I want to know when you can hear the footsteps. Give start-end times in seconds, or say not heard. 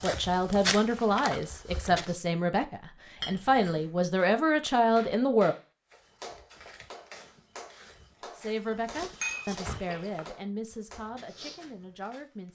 0.0-2.1, 5.9-12.5.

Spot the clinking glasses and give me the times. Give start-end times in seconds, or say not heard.
3.2-3.8, 9.2-10.2.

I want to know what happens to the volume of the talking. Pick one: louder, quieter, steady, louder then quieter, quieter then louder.
quieter.